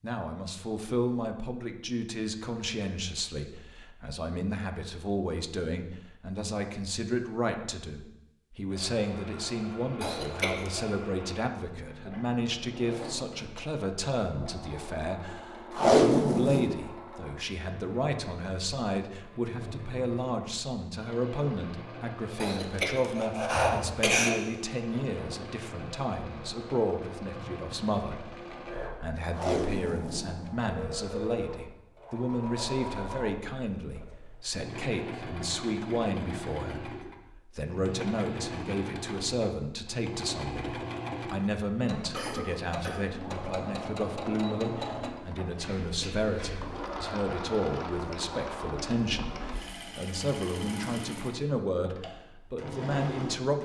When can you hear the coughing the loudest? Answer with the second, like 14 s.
24 s.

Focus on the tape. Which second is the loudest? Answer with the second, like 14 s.
16 s.